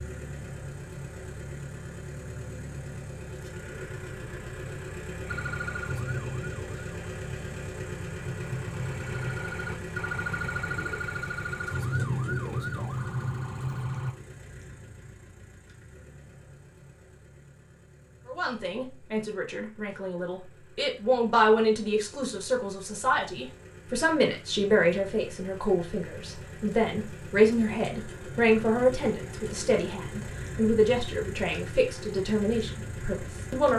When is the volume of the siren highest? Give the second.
12 s.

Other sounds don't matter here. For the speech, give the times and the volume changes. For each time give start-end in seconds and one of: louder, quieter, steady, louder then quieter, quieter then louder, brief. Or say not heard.
18.2-33.7 steady.